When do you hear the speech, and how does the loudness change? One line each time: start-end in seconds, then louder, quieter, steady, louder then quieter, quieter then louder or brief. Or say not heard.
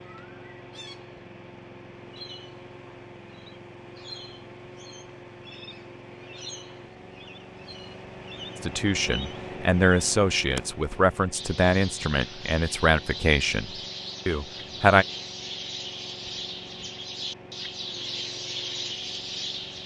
8.6-15.1 quieter.